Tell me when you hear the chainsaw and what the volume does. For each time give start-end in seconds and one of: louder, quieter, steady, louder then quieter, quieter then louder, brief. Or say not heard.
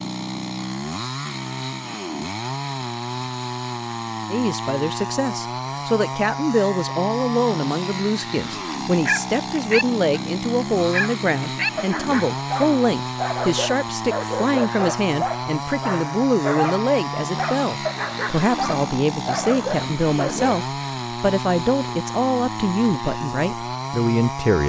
0.0-24.6 steady.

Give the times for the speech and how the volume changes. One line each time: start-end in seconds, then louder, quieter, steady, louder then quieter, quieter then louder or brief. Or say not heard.
4.3-24.6 steady.